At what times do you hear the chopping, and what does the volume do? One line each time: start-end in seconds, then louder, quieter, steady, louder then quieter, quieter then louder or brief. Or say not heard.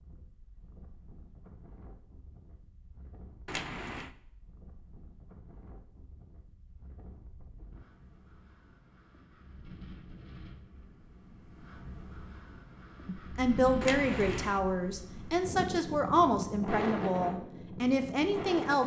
not heard.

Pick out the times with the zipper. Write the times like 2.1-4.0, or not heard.
3.5-4.1, 13.8-14.6.